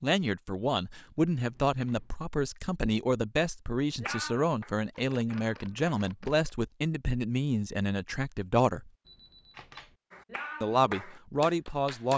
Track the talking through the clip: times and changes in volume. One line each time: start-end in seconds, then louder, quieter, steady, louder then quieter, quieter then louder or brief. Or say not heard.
0.0-8.9 steady
10.6-12.1 brief.